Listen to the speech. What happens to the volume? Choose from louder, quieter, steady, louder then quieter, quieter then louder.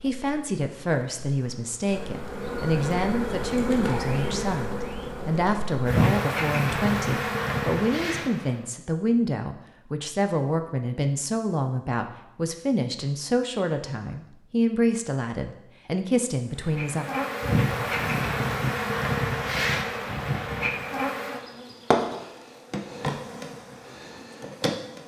steady.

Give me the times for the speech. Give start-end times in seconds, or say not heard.
0.0-17.1.